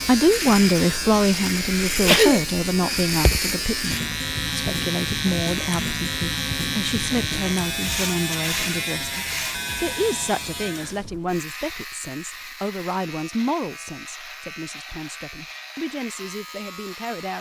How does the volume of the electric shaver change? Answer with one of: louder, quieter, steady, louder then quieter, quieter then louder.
quieter.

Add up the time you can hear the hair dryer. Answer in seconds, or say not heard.
not heard.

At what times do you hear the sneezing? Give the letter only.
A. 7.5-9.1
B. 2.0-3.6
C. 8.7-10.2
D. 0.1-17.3
B.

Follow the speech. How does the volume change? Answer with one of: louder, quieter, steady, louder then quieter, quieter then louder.
quieter.